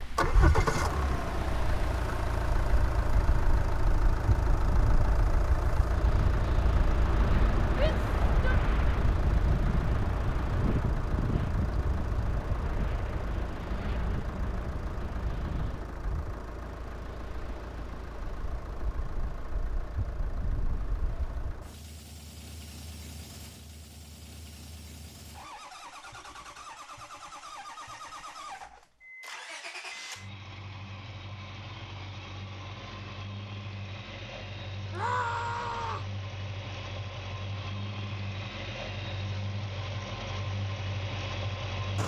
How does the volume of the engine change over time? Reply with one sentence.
The loudness of the engine goes down, then up.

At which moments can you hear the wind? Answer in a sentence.
You can hear the wind from 0.0 to 21.6 s.